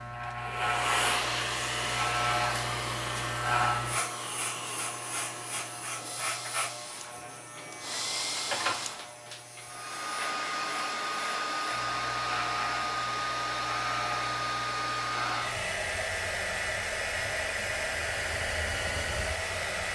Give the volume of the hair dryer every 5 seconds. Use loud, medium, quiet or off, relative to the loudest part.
loud, medium, loud, loud.